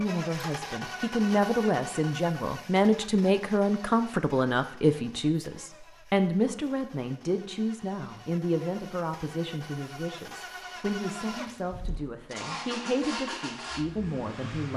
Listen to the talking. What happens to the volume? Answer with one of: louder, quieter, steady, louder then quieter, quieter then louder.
quieter.